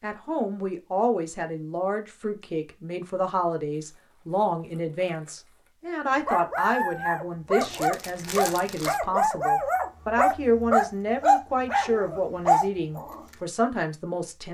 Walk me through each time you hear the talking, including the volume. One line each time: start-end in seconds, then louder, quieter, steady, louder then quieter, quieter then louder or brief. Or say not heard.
0.0-14.4 steady.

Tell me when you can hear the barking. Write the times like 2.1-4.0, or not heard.
6.2-13.2.